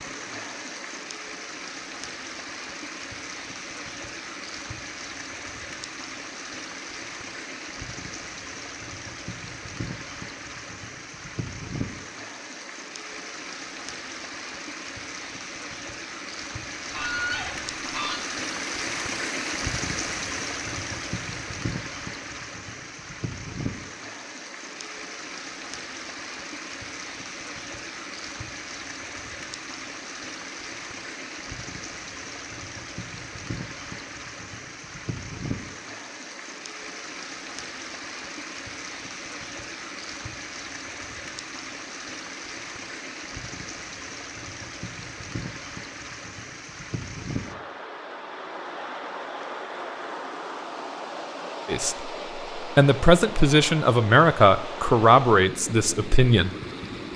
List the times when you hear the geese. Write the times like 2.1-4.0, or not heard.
16.9-18.2.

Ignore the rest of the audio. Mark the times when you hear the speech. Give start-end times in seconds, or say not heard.
51.6-56.5.